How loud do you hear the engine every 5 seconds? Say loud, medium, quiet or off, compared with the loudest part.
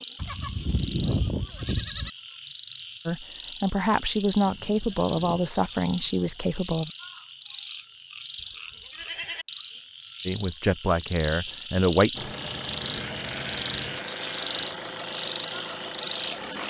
off, off, loud, loud.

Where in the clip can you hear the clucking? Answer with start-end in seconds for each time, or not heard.
not heard.